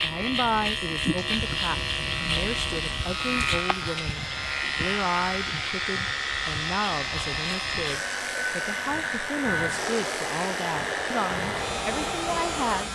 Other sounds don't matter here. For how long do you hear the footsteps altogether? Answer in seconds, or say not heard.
not heard.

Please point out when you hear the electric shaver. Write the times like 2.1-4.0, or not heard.
0.0-12.9.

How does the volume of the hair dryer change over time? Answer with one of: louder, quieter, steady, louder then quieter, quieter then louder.
louder.